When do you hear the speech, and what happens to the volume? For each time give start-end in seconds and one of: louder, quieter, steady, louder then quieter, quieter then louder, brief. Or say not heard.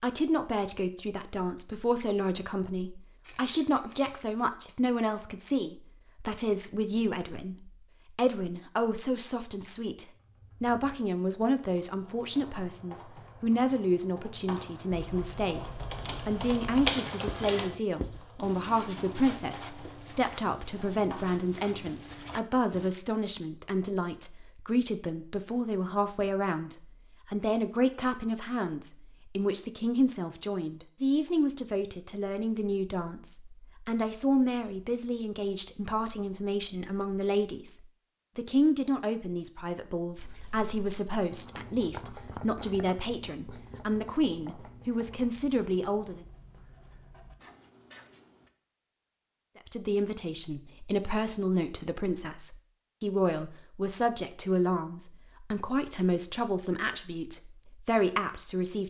0.0-46.2 steady
49.6-58.8 steady.